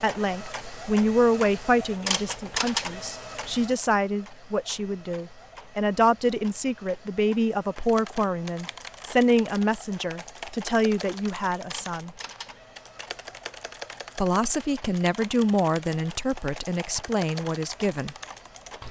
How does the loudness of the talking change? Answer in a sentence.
The loudness of the talking stays about the same.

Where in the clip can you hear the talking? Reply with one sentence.
The talking can be heard from 0.0 to 12.1 s and from 14.2 to 18.1 s.